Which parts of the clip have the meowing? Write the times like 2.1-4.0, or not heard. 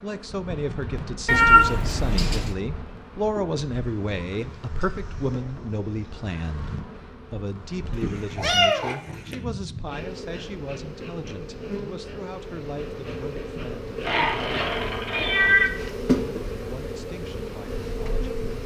1.2-2.5, 7.9-9.3, 14.0-15.7.